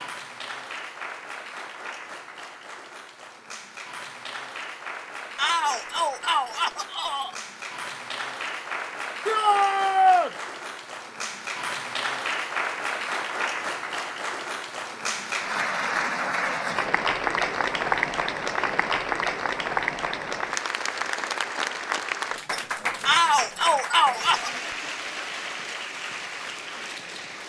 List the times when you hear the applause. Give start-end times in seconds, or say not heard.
0.0-27.4.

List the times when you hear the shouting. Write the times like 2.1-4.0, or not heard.
5.3-7.3, 9.2-10.3, 23.1-24.5.